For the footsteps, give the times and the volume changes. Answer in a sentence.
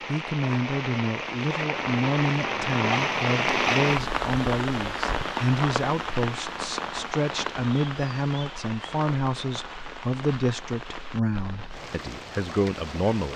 The footsteps can't be heard in this clip.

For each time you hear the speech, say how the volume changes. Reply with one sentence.
You can hear the speech from 0.1 to 13.3 s, at a steady volume.